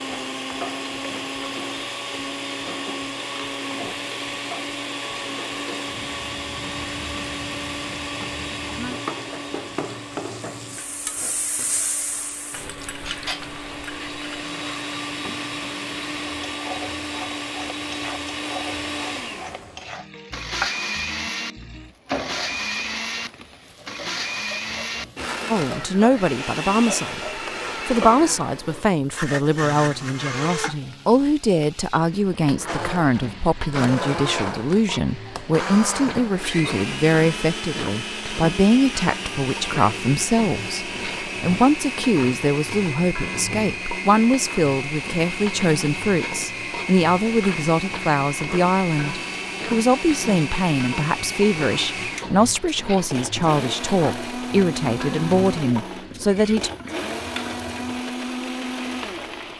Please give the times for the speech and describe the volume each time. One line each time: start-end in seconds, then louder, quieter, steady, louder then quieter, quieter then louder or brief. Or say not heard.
25.4-56.7 steady.